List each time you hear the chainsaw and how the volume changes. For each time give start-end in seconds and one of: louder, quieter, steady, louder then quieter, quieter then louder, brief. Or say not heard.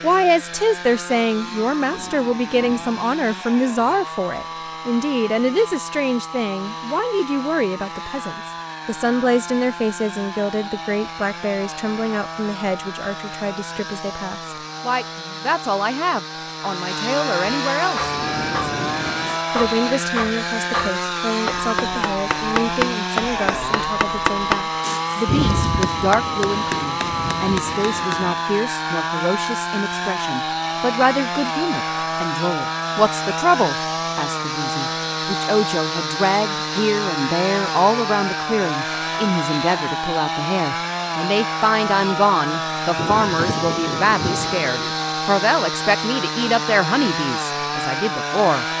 0.0-48.7 louder.